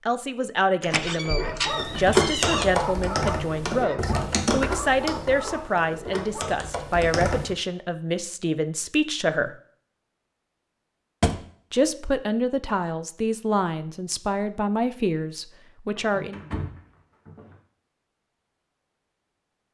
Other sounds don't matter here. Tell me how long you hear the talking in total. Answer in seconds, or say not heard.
14 s.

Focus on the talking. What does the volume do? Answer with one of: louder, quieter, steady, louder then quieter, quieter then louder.
steady.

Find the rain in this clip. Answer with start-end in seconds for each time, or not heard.
not heard.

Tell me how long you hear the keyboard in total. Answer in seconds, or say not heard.
6 s.